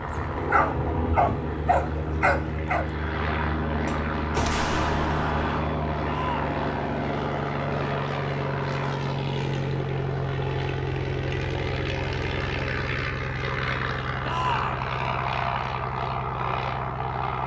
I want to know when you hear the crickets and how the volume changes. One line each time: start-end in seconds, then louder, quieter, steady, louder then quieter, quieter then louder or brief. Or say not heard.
not heard.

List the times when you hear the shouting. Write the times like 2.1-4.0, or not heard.
6.0-6.5, 14.2-14.8.